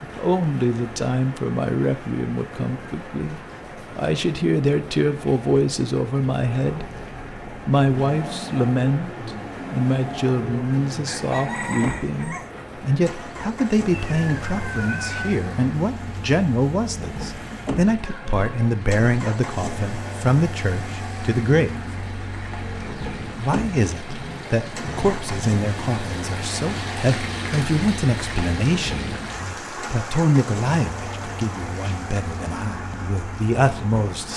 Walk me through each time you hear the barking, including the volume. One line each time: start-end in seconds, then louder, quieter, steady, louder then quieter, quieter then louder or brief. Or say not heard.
not heard.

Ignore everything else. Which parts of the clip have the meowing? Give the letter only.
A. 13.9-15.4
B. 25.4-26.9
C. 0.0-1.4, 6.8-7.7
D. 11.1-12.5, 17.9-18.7
A.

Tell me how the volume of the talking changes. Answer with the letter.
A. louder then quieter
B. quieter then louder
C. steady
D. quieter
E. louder
C.